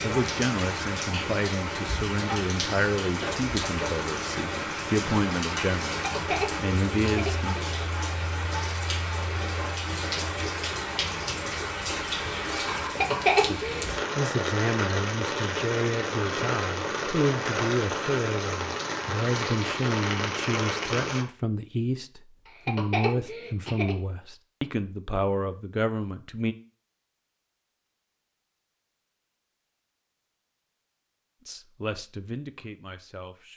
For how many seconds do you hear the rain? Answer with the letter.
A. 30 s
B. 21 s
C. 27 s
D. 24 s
B.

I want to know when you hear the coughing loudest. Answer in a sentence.
The loudest moment of the coughing is at 13 seconds.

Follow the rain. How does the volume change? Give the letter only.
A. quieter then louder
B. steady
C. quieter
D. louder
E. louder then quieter
B.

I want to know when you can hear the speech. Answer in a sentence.
The speech can be heard from 0.0 to 7.5 s, from 13.3 to 26.6 s and from 31.4 to 33.5 s.